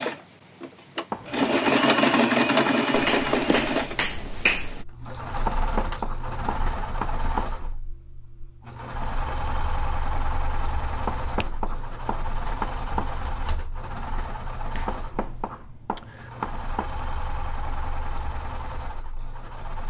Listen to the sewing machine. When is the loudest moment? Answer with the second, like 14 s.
2 s.